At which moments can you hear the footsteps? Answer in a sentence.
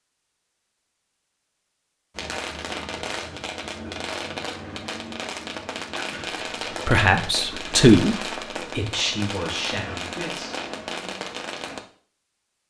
You can't hear the footsteps here.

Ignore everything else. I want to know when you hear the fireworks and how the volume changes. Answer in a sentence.
You can hear the fireworks from 2.1 to 11.8 s, at a steady volume.